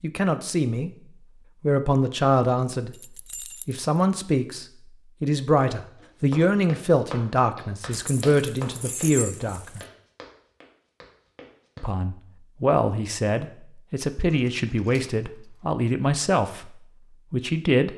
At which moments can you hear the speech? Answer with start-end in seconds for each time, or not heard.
0.0-0.9, 1.6-3.0, 3.6-9.8, 11.8-17.9.